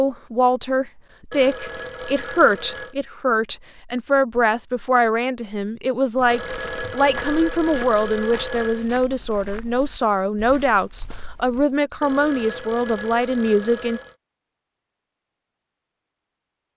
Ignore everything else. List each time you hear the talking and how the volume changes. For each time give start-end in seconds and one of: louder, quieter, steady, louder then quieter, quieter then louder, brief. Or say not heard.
0.0-14.0 steady.